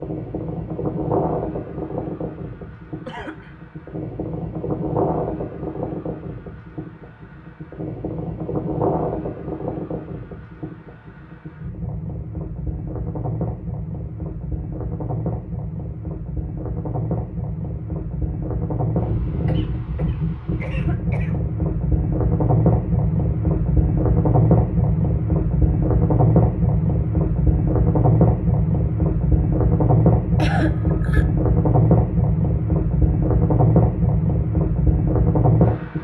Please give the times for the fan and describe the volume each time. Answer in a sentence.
The fan can be heard from 0.0 to 35.9 s, getting louder.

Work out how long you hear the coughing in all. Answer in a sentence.
You can hear the coughing for 3 seconds altogether.